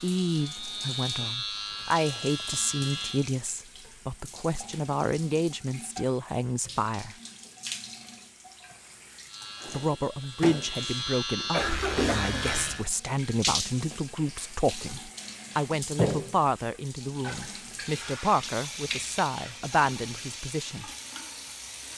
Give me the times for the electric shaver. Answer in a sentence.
You can hear the electric shaver from 0.0 to 3.3 s and from 9.2 to 12.8 s.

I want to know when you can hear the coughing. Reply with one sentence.
The coughing can be heard from 11.5 to 12.3 s.